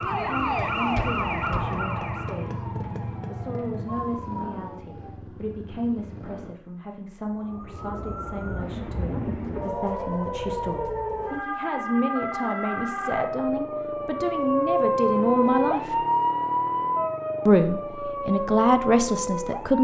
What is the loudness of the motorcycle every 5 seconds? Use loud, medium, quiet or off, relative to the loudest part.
loud, medium, off, off.